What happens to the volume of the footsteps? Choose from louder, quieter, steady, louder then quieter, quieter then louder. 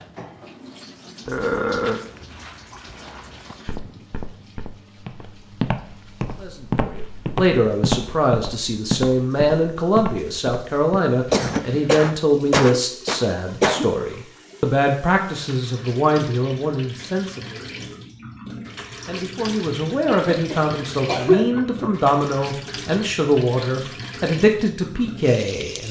louder then quieter.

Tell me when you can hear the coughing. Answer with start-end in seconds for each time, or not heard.
1.2-2.0, 11.3-13.8, 20.1-21.6.